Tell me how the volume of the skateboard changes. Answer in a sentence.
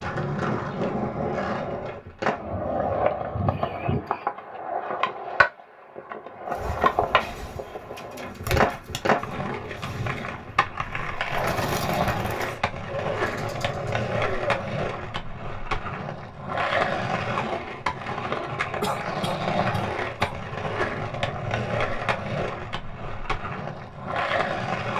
The volume of the skateboard stays about the same.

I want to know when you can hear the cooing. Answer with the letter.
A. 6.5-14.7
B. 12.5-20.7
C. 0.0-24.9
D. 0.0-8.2
A.